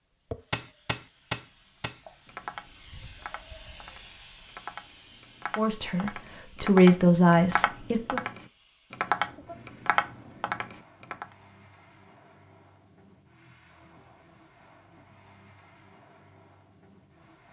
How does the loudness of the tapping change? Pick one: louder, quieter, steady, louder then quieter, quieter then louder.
quieter then louder.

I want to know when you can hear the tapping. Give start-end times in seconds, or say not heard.
0.3-11.2.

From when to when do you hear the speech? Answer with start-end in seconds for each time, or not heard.
5.5-8.2.